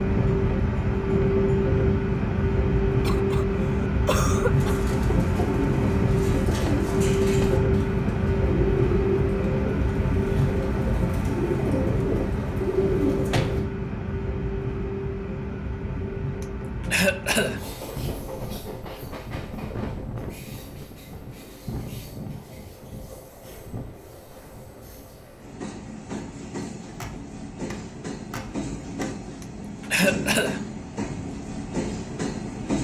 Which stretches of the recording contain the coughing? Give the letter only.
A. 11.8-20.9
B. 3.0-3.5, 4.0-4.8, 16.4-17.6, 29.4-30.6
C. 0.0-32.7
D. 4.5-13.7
B.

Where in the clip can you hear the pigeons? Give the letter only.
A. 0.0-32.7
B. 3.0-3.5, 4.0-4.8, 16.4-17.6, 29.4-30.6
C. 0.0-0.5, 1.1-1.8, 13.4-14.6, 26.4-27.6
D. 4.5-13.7
D.